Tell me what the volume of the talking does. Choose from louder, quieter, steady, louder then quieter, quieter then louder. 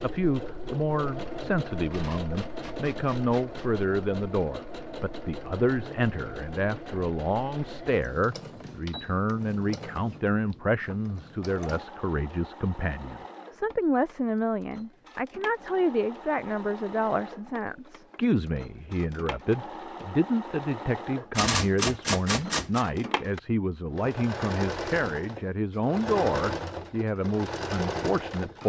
steady.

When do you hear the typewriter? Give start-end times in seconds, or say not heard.
1.9-3.7, 21.4-22.9.